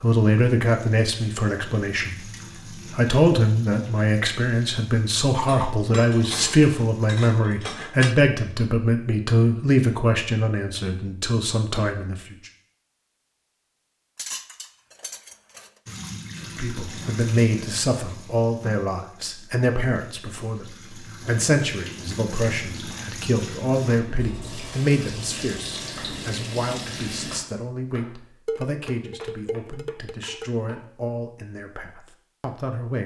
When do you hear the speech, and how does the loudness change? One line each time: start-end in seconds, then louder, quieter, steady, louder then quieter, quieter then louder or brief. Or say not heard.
0.0-12.3 steady
16.4-33.0 quieter.